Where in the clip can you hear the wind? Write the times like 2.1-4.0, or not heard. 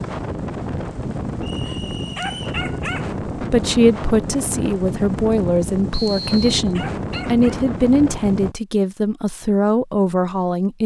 0.0-8.6.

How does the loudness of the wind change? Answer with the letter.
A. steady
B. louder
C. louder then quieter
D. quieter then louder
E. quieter
A.